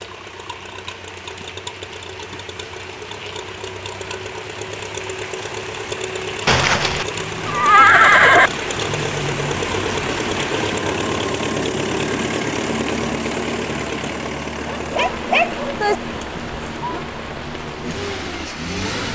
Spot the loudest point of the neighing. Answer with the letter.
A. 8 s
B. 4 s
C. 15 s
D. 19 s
A.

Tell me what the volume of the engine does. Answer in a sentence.
The loudness of the engine goes up, then down.